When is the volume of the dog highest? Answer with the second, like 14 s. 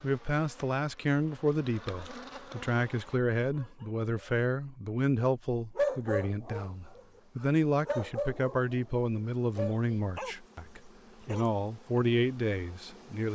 6 s.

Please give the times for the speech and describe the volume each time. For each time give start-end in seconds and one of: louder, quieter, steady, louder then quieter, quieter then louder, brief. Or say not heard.
0.0-13.3 steady.